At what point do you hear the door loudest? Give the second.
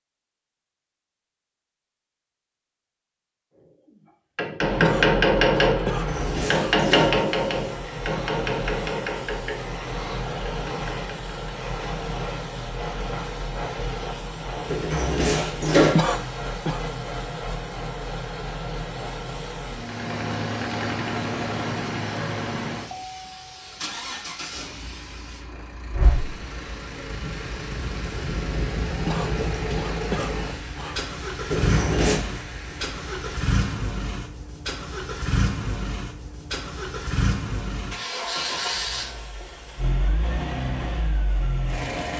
16 s.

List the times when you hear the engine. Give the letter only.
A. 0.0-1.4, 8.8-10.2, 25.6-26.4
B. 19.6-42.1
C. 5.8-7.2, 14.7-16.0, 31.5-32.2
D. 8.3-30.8
B.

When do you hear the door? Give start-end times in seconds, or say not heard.
5.8-7.2, 14.7-16.0, 31.5-32.2.